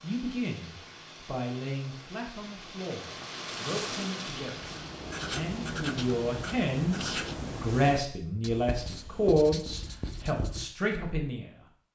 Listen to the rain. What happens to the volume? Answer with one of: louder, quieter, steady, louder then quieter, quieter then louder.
louder then quieter.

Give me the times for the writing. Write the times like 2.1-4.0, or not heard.
4.3-10.7.